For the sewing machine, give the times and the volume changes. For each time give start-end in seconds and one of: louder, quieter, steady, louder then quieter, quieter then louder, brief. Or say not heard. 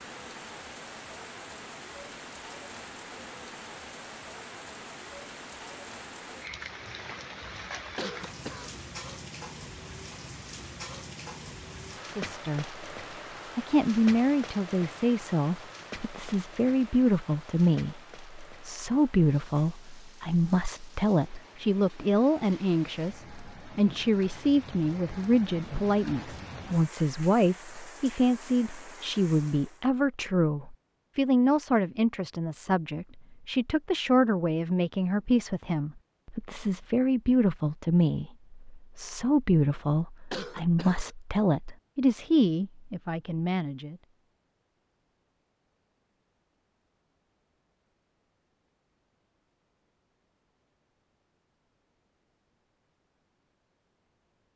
not heard.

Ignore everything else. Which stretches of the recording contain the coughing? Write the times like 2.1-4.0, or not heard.
8.0-8.8, 40.3-41.1.